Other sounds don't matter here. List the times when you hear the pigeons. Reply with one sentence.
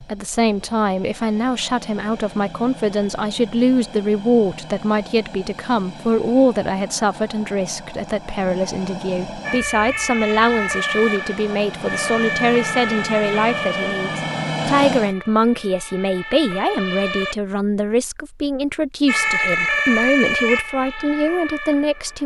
You can't hear the pigeons here.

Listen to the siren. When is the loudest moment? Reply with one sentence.
The volume of the siren peaks at 20 seconds.